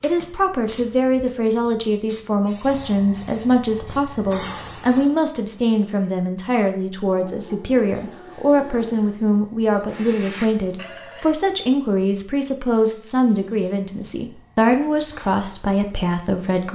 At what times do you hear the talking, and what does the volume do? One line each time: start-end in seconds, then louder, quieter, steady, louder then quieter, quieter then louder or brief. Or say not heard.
0.0-16.7 steady.